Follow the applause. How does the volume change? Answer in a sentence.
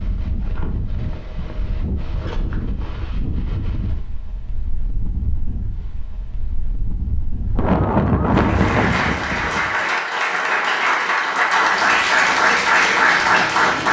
The loudness of the applause goes up.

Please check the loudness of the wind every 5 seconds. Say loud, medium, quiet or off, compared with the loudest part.
medium, loud, off.